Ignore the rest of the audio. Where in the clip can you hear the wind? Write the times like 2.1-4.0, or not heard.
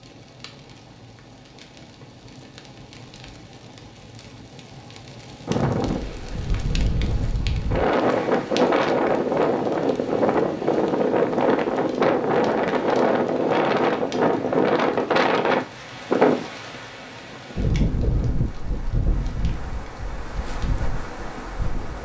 5.5-22.0.